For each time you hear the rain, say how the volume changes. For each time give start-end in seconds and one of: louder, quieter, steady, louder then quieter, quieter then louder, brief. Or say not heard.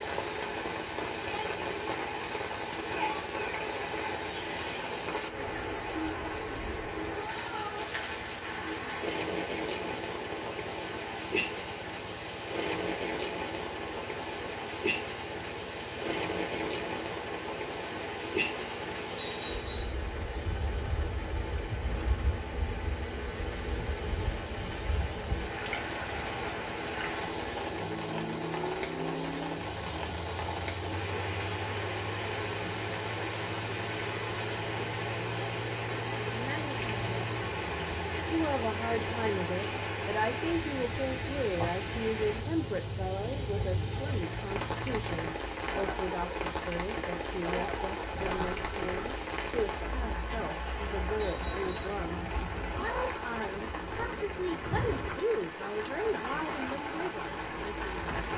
0.0-58.3 steady.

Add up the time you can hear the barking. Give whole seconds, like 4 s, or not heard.
not heard.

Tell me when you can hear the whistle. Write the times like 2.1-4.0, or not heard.
19.1-20.0, 51.1-51.8.